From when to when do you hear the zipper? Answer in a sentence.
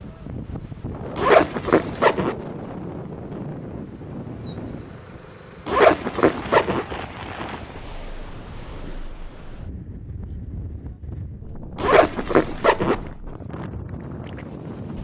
The zipper can be heard from 1.1 to 2.4 s, from 5.7 to 6.8 s and from 11.8 to 13.1 s.